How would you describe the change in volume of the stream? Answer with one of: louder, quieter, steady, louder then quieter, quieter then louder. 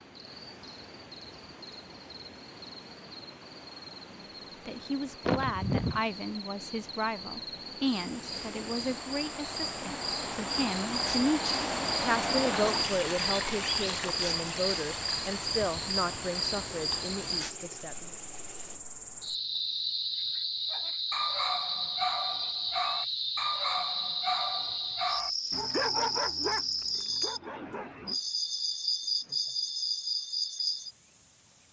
louder then quieter.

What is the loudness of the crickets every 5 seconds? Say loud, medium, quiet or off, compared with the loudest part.
quiet, medium, loud, loud, loud, loud, loud.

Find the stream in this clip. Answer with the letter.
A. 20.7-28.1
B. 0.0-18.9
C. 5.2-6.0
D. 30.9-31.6
B.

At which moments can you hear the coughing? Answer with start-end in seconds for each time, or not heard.
5.2-6.0.